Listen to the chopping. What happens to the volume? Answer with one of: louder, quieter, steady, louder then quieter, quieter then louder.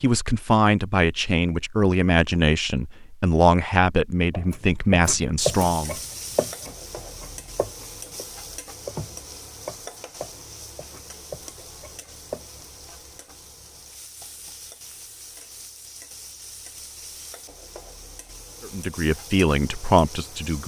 quieter.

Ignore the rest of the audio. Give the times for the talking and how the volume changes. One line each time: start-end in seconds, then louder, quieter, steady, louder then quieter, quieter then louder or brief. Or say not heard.
0.0-6.0 steady
18.6-20.6 brief.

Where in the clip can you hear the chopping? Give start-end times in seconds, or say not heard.
4.3-8.2, 8.8-12.7.